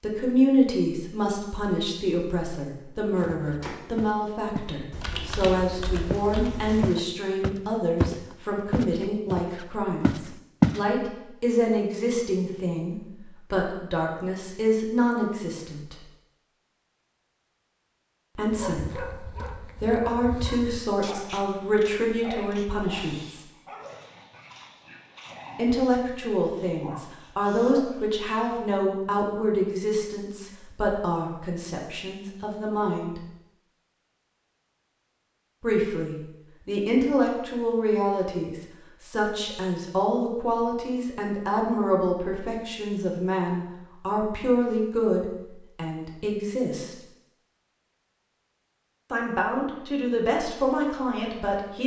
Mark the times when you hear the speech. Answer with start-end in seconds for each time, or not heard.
0.0-16.0, 18.4-23.4, 25.6-33.2, 35.6-47.0, 49.1-51.8.